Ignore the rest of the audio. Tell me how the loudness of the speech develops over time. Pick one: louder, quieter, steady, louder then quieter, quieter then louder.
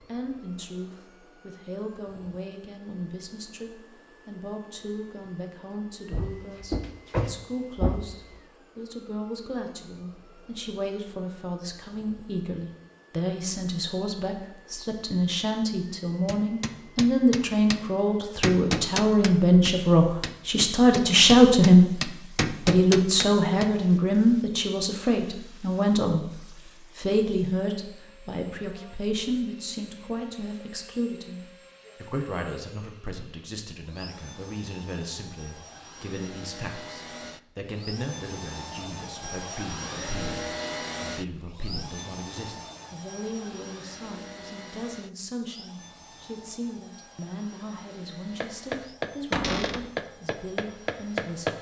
louder then quieter.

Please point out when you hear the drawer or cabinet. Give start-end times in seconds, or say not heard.
6.1-8.2, 49.3-49.9.